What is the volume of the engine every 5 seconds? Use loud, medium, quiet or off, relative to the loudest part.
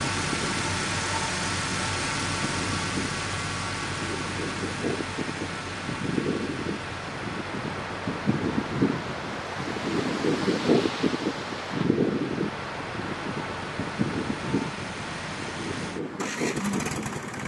loud, medium, medium, loud.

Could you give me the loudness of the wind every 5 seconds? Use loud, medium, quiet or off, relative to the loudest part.
medium, loud, loud, medium.